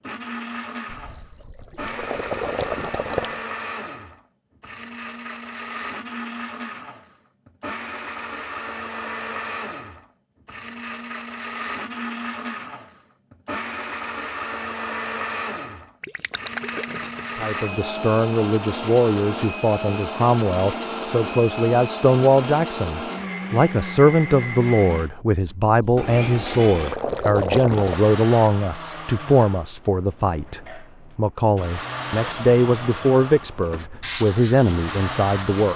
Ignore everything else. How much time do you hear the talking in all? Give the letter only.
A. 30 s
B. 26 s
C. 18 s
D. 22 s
C.